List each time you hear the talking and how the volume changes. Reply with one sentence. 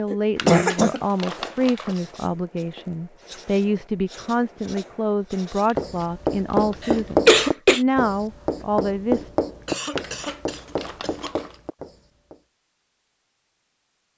You can hear the talking from 0.0 to 9.3 s, at a steady volume.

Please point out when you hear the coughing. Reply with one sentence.
The coughing can be heard from 0.1 to 1.9 s, from 6.8 to 7.8 s and from 9.7 to 11.4 s.